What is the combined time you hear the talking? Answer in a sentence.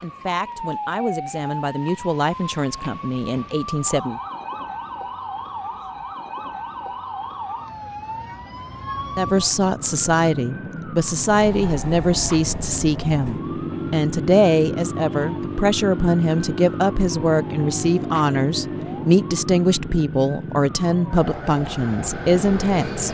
The talking can be heard for 18 seconds in total.